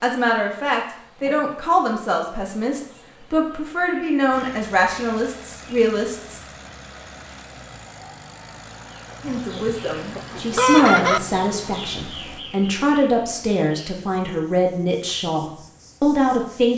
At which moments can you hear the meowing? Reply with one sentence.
You can't hear the meowing here.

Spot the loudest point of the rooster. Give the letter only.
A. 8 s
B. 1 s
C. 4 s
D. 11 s
D.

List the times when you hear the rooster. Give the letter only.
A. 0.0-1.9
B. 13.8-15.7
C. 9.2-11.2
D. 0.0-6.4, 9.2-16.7
C.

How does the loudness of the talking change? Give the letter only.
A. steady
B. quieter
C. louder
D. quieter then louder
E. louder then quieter
A.